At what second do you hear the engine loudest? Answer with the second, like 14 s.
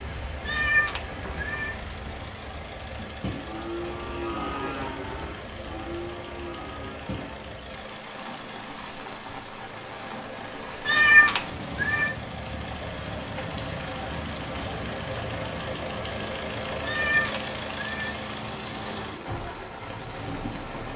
17 s.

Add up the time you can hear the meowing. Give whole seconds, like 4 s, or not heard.
4 s.